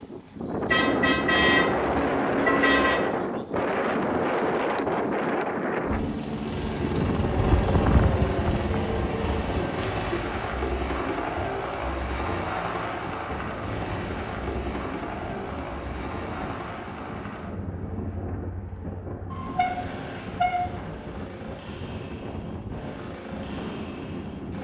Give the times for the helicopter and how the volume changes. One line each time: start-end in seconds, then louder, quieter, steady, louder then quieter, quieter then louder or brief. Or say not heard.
5.8-24.5 quieter.